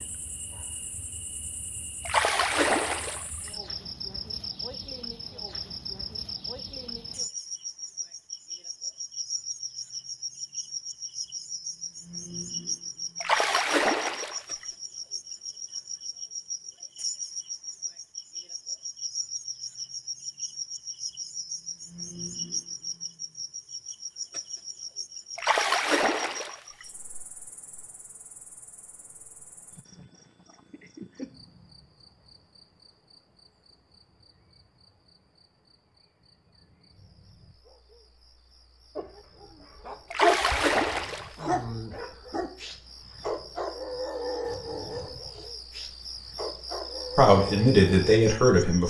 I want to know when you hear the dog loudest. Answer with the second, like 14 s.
40 s.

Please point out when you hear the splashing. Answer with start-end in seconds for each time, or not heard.
2.0-3.5, 13.2-14.7, 25.4-26.9, 40.1-41.5.